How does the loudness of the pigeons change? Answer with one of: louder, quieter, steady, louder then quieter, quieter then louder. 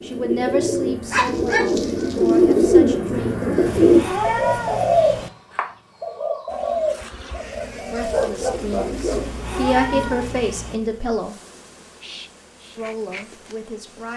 louder then quieter.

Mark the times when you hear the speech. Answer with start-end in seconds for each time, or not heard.
0.0-3.5, 7.8-11.3, 12.8-14.1.